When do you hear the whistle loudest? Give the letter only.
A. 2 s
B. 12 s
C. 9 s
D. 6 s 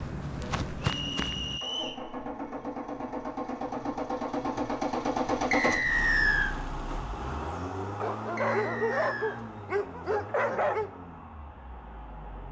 D.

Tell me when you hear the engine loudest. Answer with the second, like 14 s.
5 s.